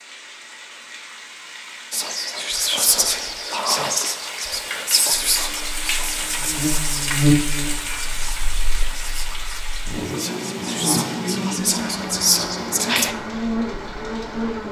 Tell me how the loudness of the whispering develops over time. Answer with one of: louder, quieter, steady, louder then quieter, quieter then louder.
quieter then louder.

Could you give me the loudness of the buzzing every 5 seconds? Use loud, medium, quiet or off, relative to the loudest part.
off, loud, loud.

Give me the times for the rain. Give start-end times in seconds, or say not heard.
0.0-14.6.